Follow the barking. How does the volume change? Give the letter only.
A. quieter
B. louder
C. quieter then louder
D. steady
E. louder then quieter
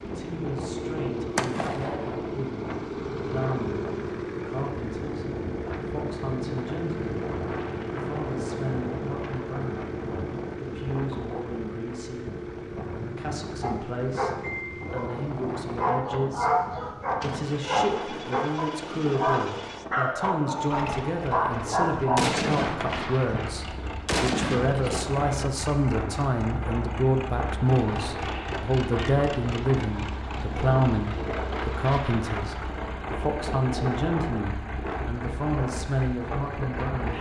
B.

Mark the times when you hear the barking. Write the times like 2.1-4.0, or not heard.
13.6-22.2.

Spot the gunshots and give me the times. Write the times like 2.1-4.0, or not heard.
1.4-2.1, 22.1-25.1.